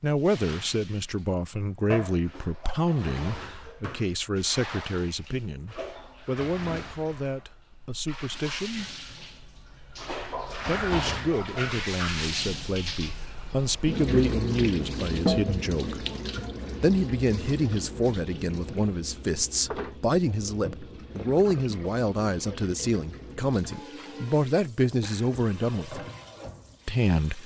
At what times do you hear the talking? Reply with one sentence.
You can hear the talking from 0.0 to 8.9 s, from 10.7 to 16.1 s, from 16.8 to 26.1 s and from 26.9 to 27.4 s.